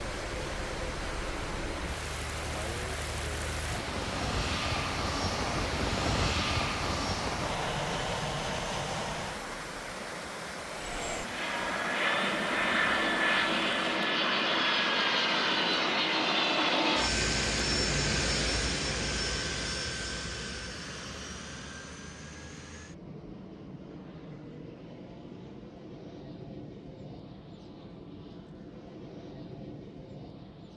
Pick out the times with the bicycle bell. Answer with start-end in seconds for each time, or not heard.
not heard.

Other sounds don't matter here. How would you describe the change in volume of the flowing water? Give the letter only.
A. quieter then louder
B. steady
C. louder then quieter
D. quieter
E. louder
B.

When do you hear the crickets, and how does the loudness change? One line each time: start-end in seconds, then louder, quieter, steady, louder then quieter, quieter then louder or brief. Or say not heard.
not heard.